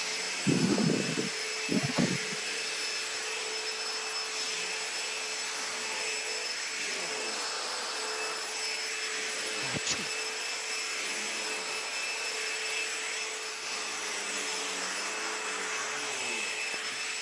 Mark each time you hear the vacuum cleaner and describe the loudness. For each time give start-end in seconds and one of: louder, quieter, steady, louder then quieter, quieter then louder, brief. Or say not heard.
0.0-17.1 steady.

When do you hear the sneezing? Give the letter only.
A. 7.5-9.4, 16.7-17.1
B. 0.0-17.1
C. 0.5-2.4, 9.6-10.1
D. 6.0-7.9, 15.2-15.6
C.